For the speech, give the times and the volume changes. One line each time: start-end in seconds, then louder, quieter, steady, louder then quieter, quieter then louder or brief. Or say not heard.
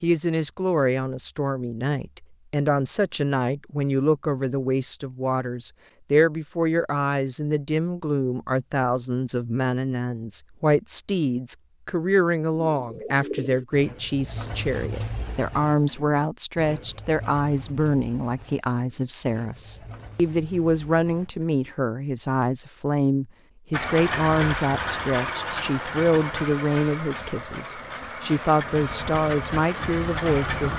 0.0-30.7 steady.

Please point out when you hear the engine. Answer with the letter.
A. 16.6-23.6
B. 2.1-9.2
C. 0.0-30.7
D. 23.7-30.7
D.